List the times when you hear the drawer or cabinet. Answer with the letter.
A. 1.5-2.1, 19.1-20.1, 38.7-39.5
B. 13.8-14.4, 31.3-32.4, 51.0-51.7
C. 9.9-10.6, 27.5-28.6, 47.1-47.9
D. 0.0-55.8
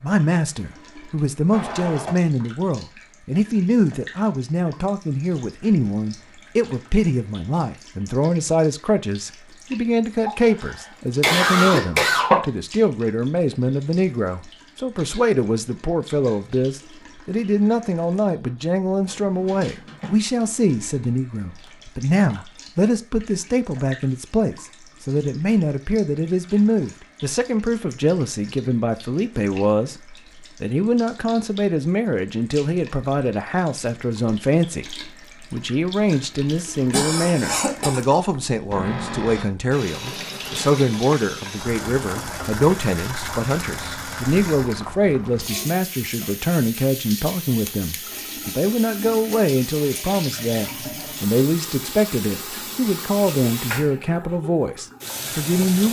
A.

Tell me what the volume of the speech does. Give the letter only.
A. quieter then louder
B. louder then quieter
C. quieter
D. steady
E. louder
D.